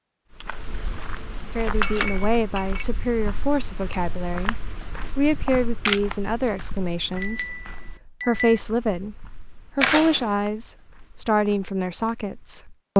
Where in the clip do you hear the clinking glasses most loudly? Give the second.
2 s.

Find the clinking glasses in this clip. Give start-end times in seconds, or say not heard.
1.8-2.9, 7.2-8.6.